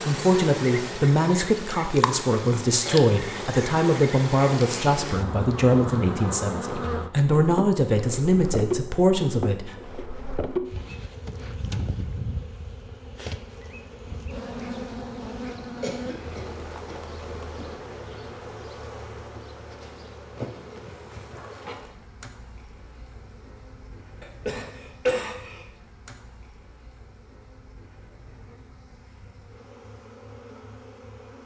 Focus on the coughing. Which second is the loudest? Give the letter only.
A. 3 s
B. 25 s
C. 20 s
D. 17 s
B.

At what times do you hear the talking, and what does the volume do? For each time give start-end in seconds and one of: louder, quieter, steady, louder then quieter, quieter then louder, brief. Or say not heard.
0.0-9.8 steady.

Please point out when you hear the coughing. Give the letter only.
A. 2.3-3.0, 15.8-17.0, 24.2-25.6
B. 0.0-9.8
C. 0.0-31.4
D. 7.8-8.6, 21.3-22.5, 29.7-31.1
A.